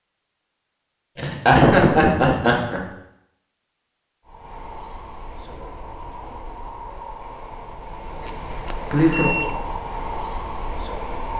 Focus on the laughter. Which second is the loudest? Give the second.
2 s.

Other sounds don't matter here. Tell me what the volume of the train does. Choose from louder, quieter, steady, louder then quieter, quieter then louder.
louder.